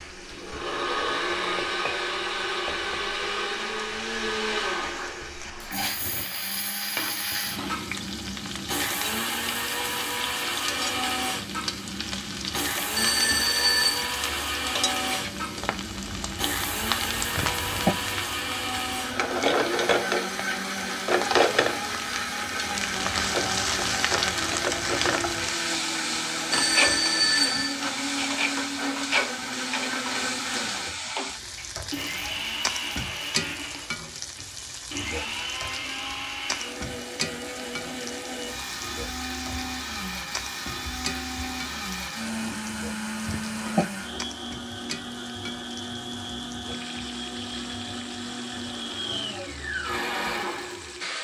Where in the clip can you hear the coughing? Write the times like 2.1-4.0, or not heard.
17.4-17.9, 43.2-43.9.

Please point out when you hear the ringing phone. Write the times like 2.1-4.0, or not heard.
12.9-14.2, 26.5-27.8.